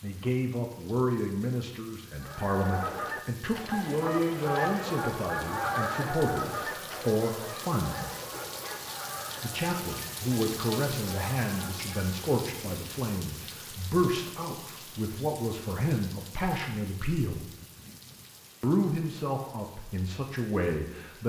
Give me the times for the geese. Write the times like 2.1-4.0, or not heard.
2.2-12.2.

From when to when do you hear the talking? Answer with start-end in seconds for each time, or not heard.
0.0-8.2, 9.4-17.4, 18.6-21.2.